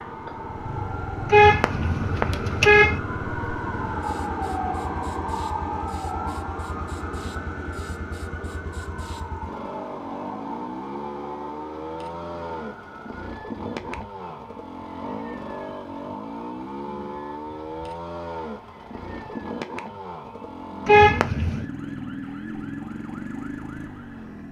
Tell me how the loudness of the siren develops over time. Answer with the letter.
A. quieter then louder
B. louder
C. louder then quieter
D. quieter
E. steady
D.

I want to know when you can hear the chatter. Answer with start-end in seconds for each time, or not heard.
not heard.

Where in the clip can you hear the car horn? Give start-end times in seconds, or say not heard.
1.3-3.0, 20.9-21.6.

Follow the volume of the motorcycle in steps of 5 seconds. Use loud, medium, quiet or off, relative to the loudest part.
medium, medium, loud, loud, loud.